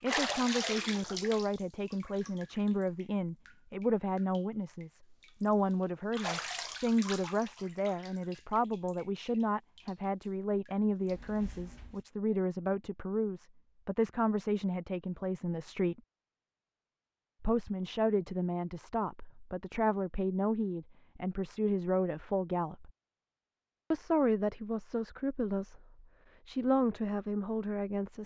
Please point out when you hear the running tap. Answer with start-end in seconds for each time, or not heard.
0.0-12.0.